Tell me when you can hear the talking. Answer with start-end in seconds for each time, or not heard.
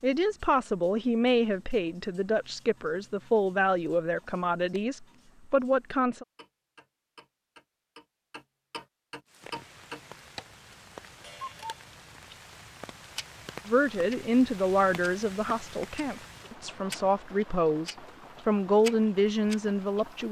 0.0-6.2, 13.7-20.2.